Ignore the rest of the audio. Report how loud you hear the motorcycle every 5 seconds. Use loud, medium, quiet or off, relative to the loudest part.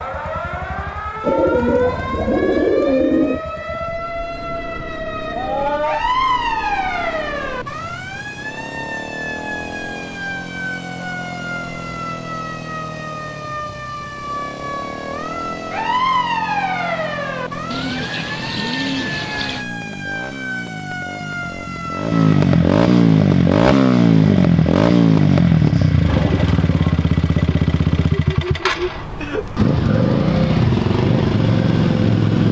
quiet, quiet, quiet, quiet, loud, loud, loud.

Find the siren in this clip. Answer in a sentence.
You can hear the siren from 0.0 to 22.4 s.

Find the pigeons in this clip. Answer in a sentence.
You can hear the pigeons from 1.2 to 3.4 s, from 17.7 to 19.6 s and from 26.1 to 27.9 s.